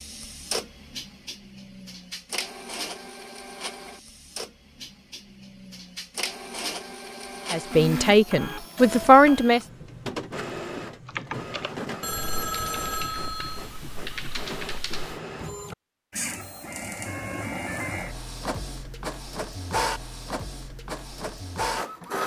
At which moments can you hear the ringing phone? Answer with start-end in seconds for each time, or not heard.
12.0-13.7.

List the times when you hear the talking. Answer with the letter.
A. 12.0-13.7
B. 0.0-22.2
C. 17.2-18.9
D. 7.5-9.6
D.